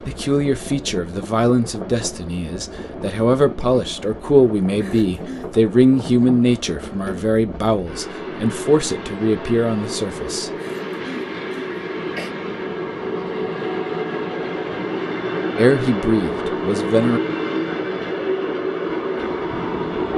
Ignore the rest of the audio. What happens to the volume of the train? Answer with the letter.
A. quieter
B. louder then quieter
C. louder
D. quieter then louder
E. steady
C.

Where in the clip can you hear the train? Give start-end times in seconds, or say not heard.
0.0-20.1.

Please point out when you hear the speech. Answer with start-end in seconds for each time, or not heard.
0.0-10.5, 15.6-17.2.